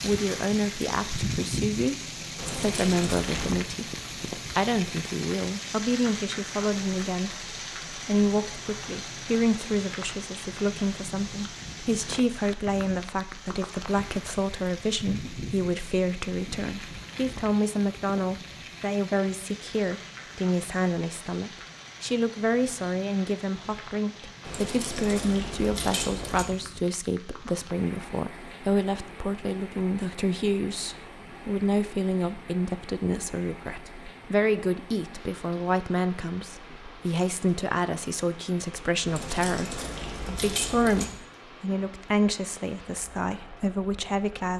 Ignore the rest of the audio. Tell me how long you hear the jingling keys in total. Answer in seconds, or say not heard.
5 s.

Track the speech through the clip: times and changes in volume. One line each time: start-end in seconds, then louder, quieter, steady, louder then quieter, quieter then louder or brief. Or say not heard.
0.0-44.5 steady.